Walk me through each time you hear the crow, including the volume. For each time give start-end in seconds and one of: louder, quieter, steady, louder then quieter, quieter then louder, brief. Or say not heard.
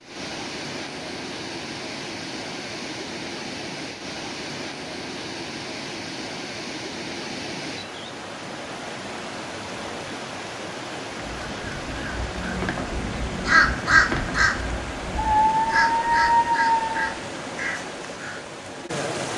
11.3-18.4 louder then quieter.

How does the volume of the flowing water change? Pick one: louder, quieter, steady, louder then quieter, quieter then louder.
steady.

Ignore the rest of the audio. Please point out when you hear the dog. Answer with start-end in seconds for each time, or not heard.
15.2-16.9.